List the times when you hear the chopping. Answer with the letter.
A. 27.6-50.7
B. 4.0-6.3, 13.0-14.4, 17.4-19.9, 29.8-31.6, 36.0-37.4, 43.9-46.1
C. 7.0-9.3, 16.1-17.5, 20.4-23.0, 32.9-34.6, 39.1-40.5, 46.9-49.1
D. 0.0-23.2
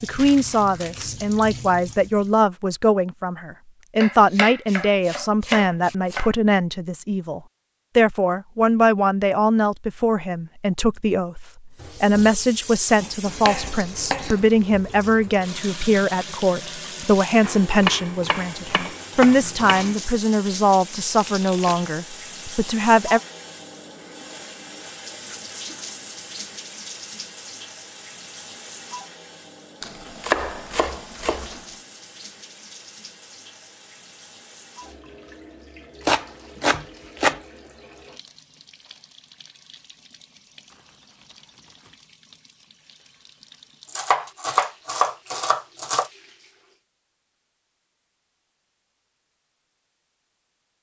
B.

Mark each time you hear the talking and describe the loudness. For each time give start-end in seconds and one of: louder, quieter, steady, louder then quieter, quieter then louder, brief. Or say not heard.
0.0-23.2 steady.